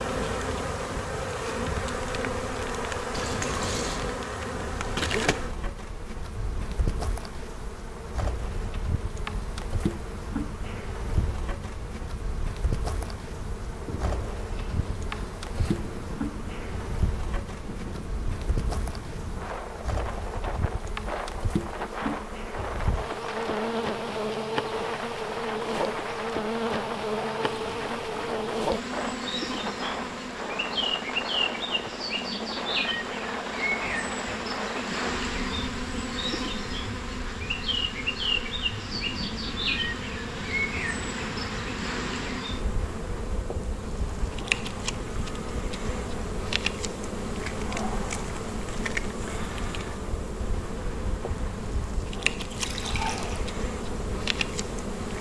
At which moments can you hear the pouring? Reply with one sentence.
You can hear the pouring from 3.1 to 4.0 s, from 27.4 to 28.4 s and from 52.5 to 53.5 s.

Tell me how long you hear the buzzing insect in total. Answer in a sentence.
The buzzing insect can be heard for 55 seconds in total.